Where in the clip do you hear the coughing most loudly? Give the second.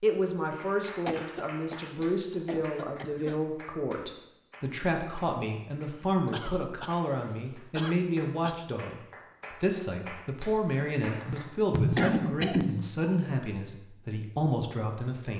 12 s.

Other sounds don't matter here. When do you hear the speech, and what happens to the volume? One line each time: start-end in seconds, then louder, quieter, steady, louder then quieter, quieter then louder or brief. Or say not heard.
0.0-15.3 steady.